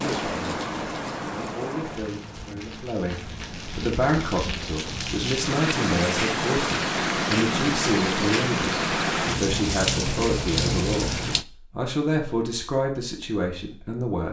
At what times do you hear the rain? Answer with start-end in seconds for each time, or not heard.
0.0-11.4.